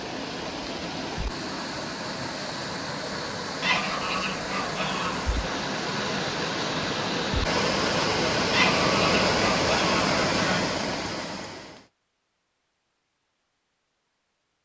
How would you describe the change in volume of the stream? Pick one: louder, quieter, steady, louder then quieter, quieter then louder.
louder.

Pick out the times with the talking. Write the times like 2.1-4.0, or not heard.
not heard.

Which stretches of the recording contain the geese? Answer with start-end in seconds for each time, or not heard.
3.6-5.3, 8.5-10.7.